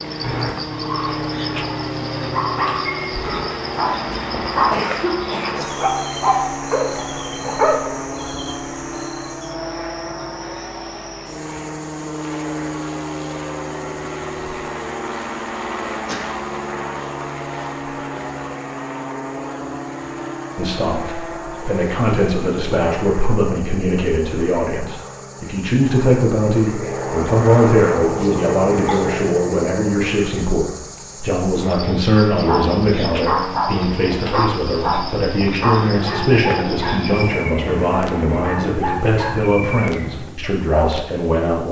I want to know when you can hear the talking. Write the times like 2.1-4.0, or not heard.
20.6-41.6.